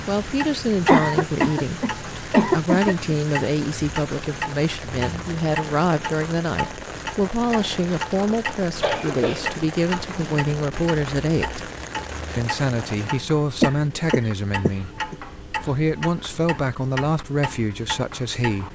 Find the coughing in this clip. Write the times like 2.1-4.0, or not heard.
0.8-3.1, 8.6-10.4, 13.6-15.2.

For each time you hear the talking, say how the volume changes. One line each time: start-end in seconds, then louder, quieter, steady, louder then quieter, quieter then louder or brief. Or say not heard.
0.1-11.7 steady
12.3-18.7 steady.